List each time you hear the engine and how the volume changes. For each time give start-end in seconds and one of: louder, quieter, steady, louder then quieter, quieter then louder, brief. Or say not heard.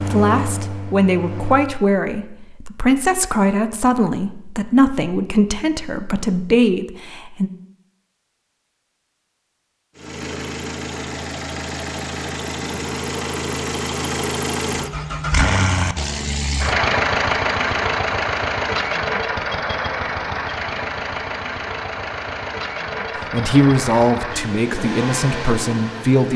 0.0-1.7 brief
9.9-26.3 louder then quieter.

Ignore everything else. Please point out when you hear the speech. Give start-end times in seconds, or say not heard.
0.0-7.5, 23.1-26.3.